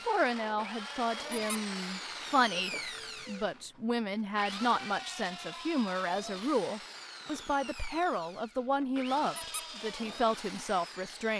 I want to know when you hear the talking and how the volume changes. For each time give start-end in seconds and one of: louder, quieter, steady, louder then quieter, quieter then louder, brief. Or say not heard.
0.1-11.3 steady.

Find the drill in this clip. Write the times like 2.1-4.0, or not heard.
0.0-11.3.